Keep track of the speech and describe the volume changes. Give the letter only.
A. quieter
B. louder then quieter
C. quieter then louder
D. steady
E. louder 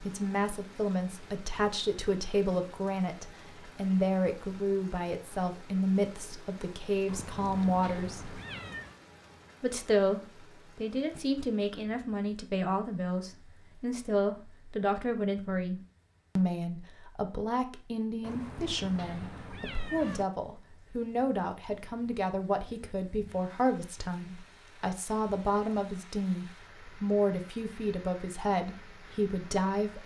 D.